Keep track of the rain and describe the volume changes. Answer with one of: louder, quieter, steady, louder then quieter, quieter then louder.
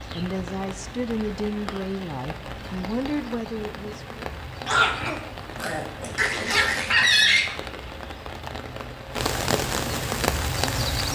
louder.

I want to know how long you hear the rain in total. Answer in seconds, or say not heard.
11 s.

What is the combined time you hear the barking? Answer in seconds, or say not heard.
3 s.